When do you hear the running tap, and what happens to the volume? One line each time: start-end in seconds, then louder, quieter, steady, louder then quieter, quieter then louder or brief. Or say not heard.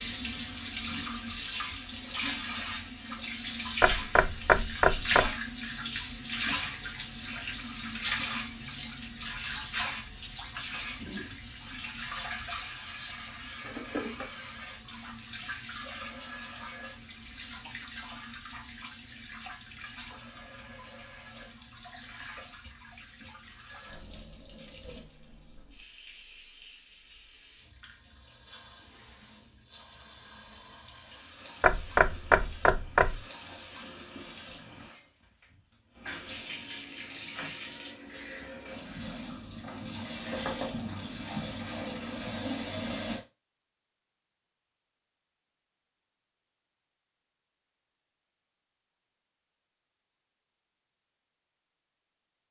0.0-43.2 quieter then louder.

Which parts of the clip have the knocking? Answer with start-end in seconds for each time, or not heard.
3.8-5.3, 31.6-33.2, 40.3-40.7.